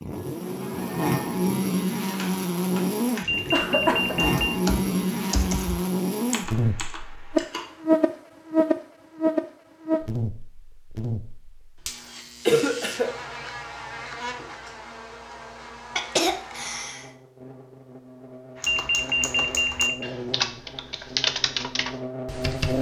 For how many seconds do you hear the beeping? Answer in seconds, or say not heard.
3 s.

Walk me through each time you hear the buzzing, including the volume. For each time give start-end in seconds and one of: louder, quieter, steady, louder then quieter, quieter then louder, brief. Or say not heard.
0.0-22.7 quieter.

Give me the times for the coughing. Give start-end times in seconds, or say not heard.
3.5-4.3, 12.4-13.1, 15.9-17.1.